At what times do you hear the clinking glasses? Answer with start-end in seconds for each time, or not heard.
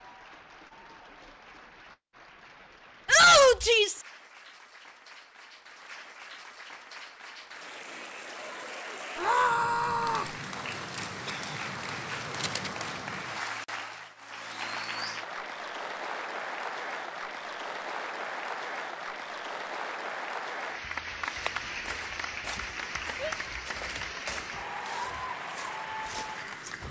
not heard.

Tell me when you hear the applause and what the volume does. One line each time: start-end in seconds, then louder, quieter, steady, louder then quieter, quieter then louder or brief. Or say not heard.
0.0-26.8 louder.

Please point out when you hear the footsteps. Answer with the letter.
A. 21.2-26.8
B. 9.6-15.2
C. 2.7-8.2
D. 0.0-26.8
A.